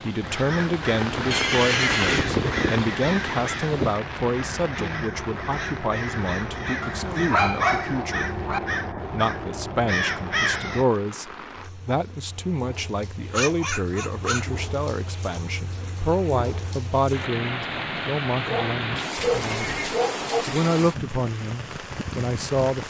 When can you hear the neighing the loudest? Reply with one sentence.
The loudest moment of the neighing is at 2 seconds.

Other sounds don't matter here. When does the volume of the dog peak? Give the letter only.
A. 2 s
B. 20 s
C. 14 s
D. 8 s
D.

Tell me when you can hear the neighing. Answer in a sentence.
The neighing can be heard from 1.3 to 2.2 s and from 19.1 to 20.0 s.